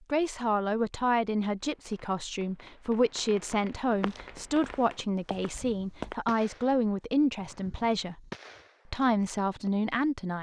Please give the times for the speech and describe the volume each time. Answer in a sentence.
You can hear the speech from 0.1 to 8.3 s, at a steady volume; and briefly from 8.9 to 10.3 s.